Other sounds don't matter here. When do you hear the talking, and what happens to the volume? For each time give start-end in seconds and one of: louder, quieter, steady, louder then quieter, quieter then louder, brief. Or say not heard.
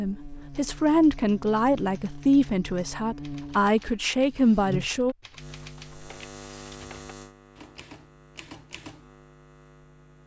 0.0-5.2 steady.